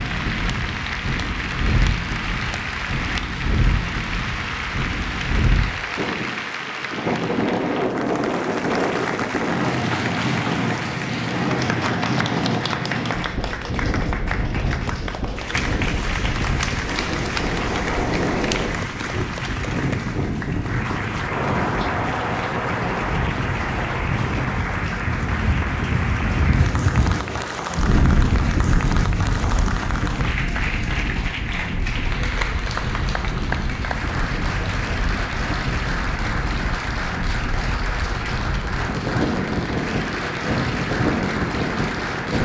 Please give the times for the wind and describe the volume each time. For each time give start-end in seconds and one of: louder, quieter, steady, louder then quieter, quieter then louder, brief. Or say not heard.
0.0-42.4 steady.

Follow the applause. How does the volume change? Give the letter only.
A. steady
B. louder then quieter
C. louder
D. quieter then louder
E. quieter
A.